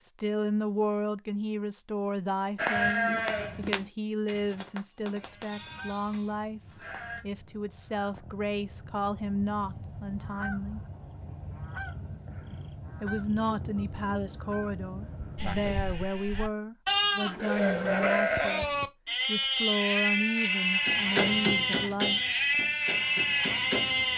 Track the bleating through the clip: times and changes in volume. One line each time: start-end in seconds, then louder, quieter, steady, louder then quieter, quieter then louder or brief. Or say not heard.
2.5-7.2 quieter
15.3-24.1 steady.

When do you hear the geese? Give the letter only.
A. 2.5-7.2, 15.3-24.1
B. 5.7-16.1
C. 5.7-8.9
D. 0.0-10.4
B.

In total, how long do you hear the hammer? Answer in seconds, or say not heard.
3 s.